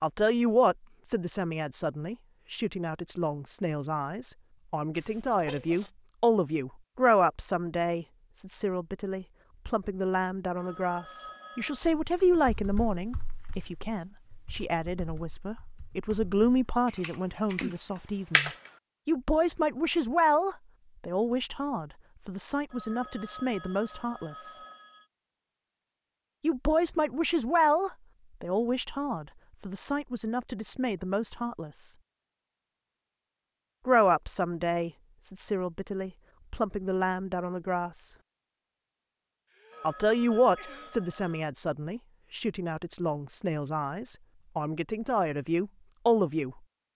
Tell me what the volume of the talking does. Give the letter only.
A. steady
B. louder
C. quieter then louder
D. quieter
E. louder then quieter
A.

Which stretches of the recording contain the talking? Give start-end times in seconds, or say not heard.
0.0-24.6, 26.4-31.9, 33.9-38.1, 39.8-46.6.